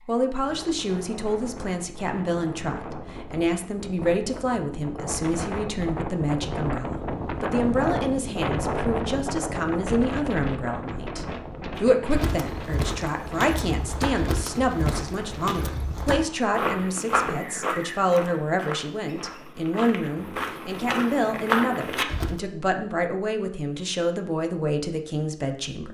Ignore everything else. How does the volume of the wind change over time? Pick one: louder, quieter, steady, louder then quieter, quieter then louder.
louder then quieter.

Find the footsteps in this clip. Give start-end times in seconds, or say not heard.
11.8-22.4.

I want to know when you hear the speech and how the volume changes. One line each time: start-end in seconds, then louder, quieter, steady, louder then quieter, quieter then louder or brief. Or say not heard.
0.1-25.9 steady.